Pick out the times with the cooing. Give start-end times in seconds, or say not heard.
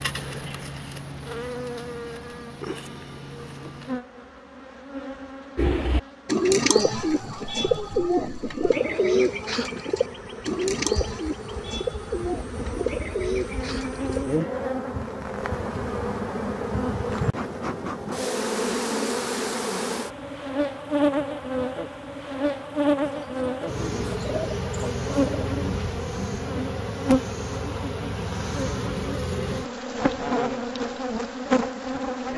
5.5-14.2, 23.1-26.4.